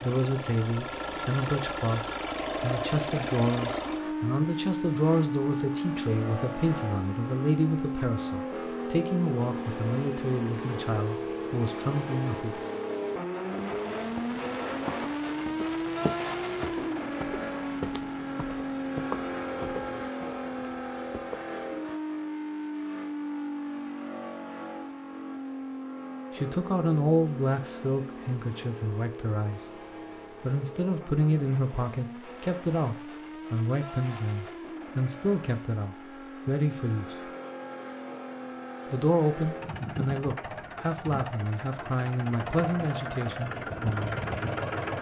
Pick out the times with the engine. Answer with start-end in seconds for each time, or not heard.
0.0-44.9.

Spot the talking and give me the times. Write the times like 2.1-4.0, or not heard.
0.0-12.6, 26.3-29.7, 30.3-37.3, 38.9-44.2.